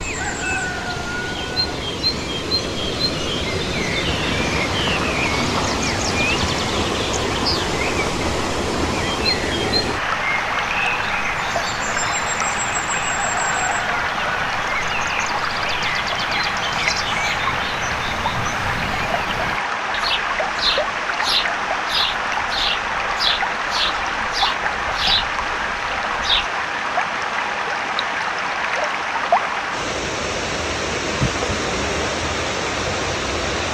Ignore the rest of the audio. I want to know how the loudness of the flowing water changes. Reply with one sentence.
The loudness of the flowing water stays about the same.